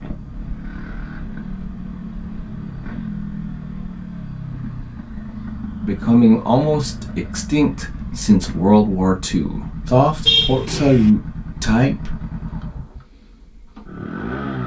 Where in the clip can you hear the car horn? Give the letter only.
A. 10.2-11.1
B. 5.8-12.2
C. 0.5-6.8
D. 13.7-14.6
A.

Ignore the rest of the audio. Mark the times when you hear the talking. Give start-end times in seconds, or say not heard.
5.8-12.2.